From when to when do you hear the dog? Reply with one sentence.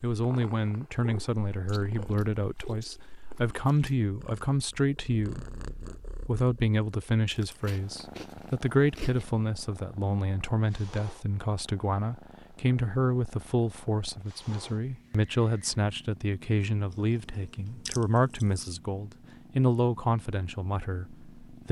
The dog can't be heard in this clip.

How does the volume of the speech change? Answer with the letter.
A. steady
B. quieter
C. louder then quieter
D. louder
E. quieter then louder
A.